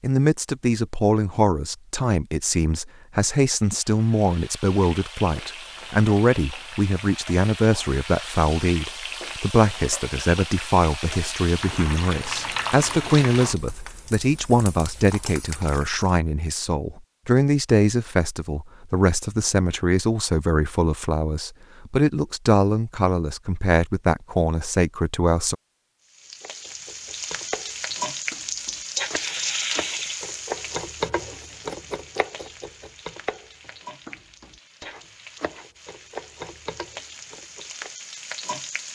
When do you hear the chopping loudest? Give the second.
31 s.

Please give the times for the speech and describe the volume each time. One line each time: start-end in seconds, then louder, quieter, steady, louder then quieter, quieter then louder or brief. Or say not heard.
0.0-25.6 steady.